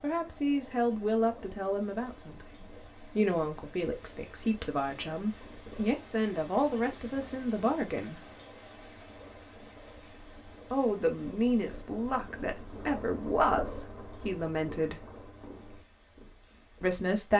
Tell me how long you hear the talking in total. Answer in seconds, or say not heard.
13 s.